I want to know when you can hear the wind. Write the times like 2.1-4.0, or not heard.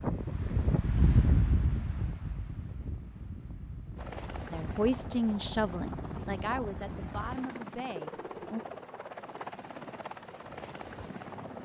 0.0-7.4.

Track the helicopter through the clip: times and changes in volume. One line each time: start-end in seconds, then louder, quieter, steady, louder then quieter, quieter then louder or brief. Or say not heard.
4.0-11.6 steady.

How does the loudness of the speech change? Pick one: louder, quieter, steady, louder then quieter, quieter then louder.
quieter.